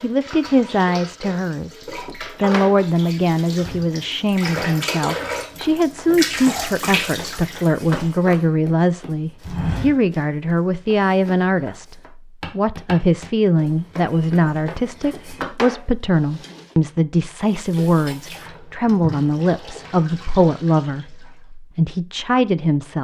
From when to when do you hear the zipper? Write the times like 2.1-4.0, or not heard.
not heard.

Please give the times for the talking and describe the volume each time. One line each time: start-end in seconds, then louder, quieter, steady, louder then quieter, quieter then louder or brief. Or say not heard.
0.0-22.9 steady.